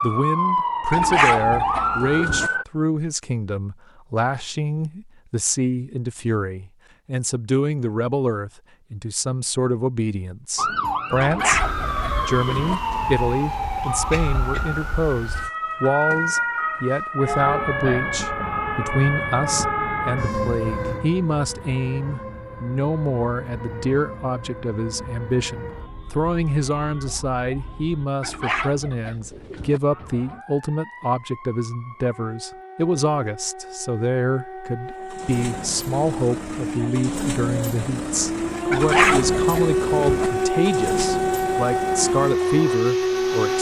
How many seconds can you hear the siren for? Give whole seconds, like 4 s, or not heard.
34 s.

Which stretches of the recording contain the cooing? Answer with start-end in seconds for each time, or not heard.
0.9-2.5, 11.2-12.8, 28.2-29.8, 38.7-40.3.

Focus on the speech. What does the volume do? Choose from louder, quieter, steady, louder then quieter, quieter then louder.
steady.